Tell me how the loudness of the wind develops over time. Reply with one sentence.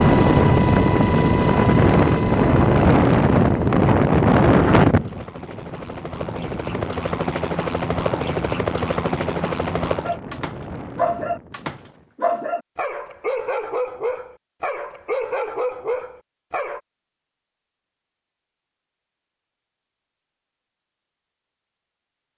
The volume of the wind goes down.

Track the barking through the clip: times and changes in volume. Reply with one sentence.
The barking can be heard from 10.0 to 16.8 s, at a steady volume.